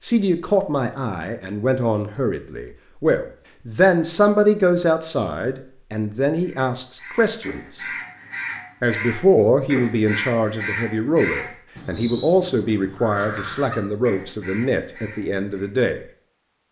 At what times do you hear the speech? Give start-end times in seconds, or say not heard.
0.0-7.8, 8.8-16.0.